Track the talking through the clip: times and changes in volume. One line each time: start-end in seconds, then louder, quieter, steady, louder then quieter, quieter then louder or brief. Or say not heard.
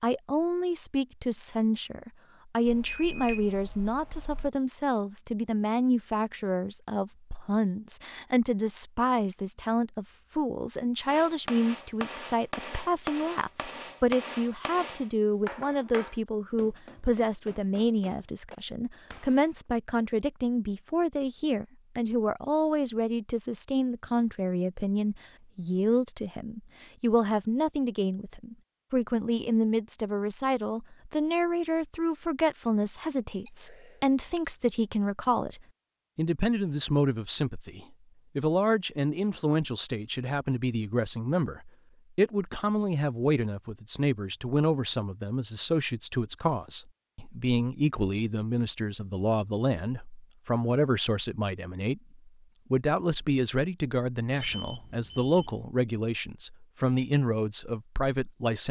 0.0-58.6 steady.